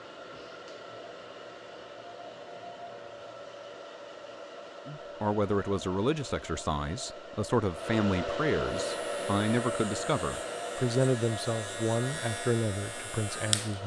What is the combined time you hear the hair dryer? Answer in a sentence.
You can hear the hair dryer for 14 seconds altogether.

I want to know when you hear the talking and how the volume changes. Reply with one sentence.
You can hear the talking from 4.8 to 13.8 s, at a steady volume.